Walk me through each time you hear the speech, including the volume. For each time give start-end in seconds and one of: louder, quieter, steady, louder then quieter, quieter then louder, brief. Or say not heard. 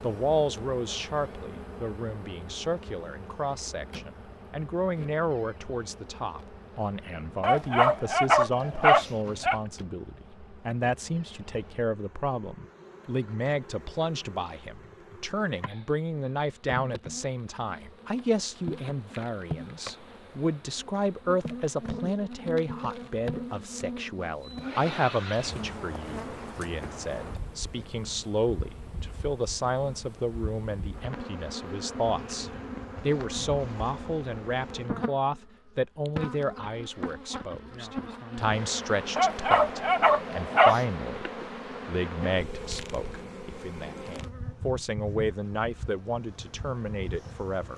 0.0-47.7 steady.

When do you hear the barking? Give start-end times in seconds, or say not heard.
7.4-9.6, 39.1-40.8.